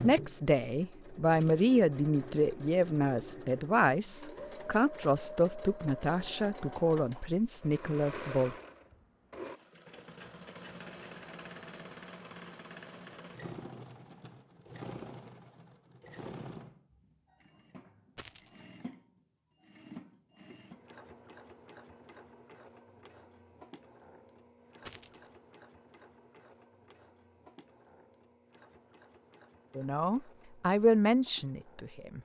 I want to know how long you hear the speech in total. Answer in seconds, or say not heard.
11 s.